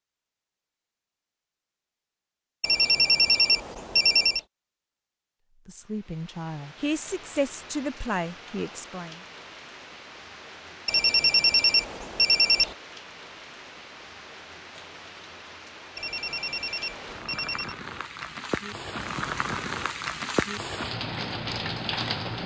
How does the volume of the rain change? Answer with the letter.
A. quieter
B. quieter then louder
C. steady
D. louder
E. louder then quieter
D.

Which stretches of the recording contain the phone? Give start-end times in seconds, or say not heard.
2.6-4.4, 10.8-12.8, 15.9-17.8.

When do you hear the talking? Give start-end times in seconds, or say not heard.
5.7-9.2.